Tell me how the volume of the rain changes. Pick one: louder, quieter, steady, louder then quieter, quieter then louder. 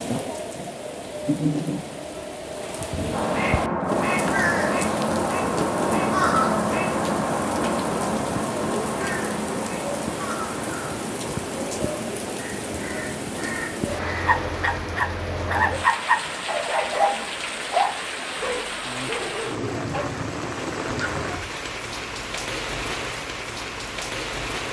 steady.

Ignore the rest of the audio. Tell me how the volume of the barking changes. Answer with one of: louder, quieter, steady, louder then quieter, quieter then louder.
quieter.